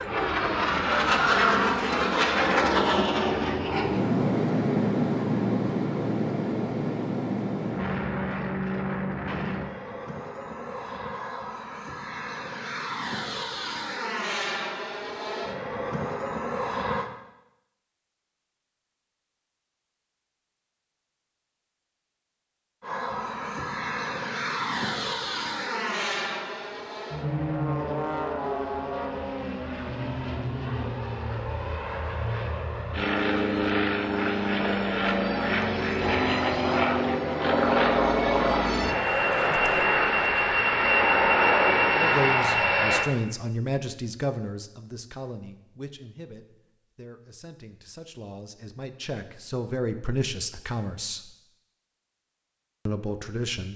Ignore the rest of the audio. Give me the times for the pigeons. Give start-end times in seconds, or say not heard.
not heard.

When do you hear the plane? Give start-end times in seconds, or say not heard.
0.0-17.1, 22.8-43.1.